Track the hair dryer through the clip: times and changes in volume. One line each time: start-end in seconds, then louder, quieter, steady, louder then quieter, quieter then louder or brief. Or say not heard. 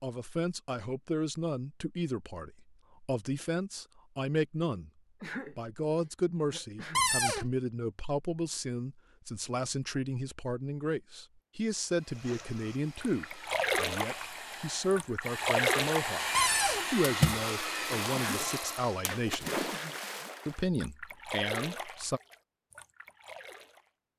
11.8-19.1 louder.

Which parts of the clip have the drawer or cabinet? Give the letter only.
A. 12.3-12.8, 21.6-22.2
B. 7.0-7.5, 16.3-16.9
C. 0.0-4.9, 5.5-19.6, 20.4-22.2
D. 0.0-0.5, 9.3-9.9
B.